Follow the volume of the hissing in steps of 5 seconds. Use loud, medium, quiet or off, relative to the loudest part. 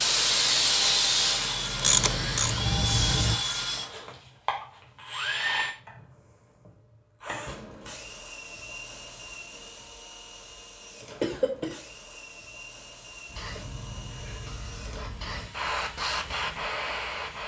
loud, off, quiet, medium.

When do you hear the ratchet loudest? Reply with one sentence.
The loudest moment of the ratchet is at 2 seconds.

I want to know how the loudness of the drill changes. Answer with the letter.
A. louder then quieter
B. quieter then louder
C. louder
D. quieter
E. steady
D.